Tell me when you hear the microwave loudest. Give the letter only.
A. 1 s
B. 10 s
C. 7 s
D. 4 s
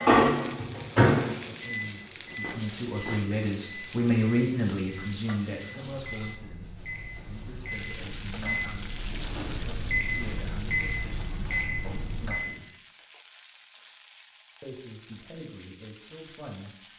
A.